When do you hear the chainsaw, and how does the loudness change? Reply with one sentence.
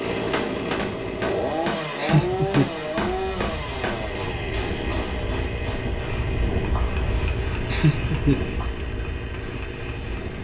You can hear the chainsaw from 0.0 to 10.3 s, getting quieter.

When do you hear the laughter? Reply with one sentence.
The laughter can be heard from 2.0 to 2.7 s and from 7.7 to 8.4 s.